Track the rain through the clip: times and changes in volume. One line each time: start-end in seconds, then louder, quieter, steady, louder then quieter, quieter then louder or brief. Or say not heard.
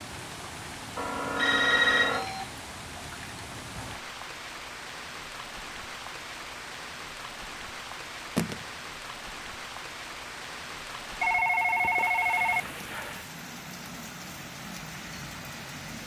0.0-16.0 steady.